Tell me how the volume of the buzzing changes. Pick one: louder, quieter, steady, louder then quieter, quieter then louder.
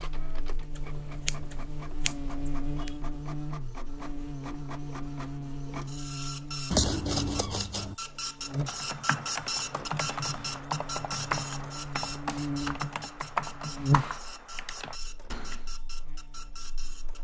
louder.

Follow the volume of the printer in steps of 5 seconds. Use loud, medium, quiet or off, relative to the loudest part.
medium, loud, loud, medium.